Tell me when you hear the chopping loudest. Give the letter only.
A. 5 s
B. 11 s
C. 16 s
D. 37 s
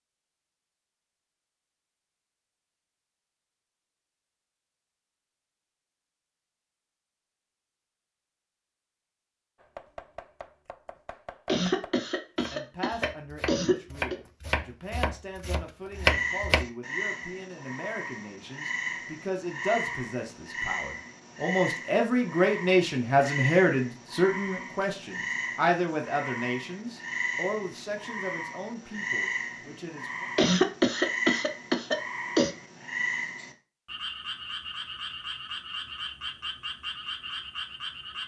C.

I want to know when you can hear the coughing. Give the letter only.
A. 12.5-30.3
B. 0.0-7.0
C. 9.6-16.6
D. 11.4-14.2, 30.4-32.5
D.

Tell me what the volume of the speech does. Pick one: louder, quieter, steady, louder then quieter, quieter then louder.
louder then quieter.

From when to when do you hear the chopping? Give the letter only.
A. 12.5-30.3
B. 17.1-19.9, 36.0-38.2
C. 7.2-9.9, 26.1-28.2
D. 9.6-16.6
D.